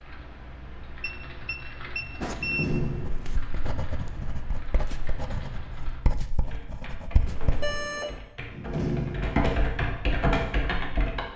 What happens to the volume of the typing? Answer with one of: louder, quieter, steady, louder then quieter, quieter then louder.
louder.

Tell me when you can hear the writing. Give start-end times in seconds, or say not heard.
2.2-7.8.